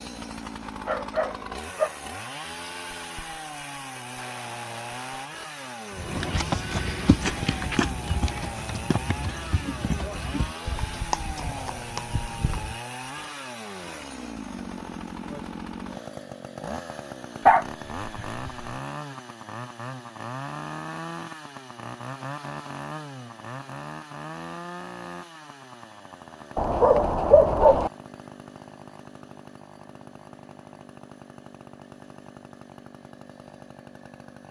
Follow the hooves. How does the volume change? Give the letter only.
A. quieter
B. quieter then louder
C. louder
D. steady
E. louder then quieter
A.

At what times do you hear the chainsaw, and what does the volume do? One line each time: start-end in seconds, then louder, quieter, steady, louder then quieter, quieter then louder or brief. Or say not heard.
0.0-34.4 quieter.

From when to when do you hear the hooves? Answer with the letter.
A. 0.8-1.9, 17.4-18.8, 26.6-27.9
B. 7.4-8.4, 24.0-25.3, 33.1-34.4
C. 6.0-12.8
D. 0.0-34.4
C.